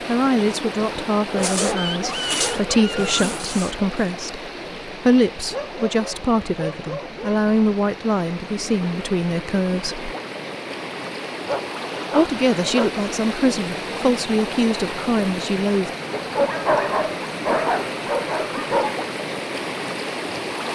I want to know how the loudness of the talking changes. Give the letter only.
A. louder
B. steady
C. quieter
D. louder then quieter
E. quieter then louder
B.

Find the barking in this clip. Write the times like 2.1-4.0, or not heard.
1.3-3.3, 5.5-7.3, 11.4-12.9, 16.1-18.9.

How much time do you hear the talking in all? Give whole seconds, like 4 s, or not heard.
14 s.